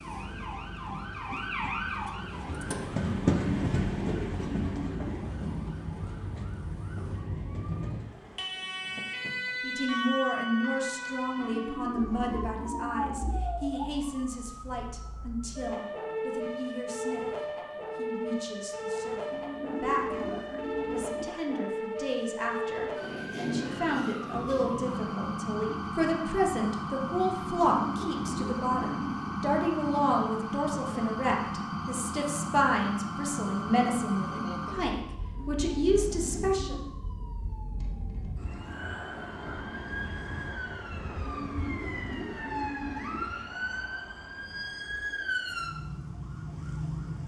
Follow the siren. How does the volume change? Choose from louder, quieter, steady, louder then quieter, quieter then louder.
steady.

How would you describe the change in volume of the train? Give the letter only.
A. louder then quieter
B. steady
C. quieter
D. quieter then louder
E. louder
A.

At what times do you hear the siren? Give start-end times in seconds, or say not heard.
0.0-47.2.